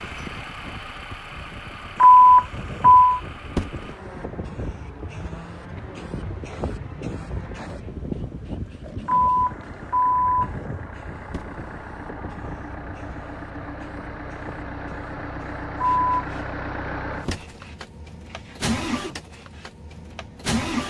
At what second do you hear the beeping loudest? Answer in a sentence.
The loudest moment of the beeping is at 2 seconds.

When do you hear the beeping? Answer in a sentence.
You can hear the beeping from 2.0 to 3.2 s, from 9.1 to 10.5 s and from 15.8 to 16.2 s.